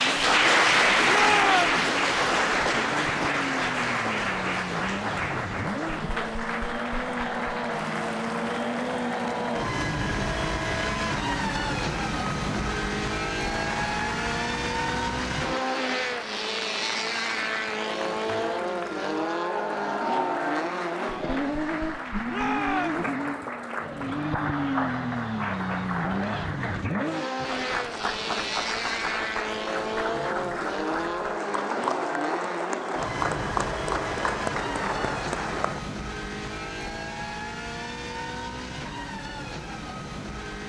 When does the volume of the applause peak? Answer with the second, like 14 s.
1 s.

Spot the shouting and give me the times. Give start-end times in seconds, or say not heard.
1.1-1.8, 22.2-23.1.